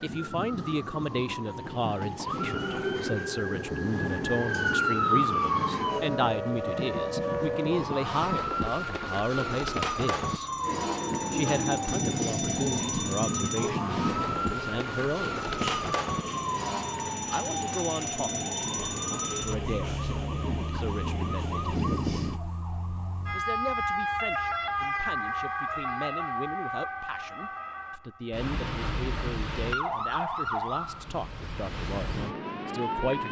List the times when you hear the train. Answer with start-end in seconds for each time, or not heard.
0.0-8.5, 10.6-22.4.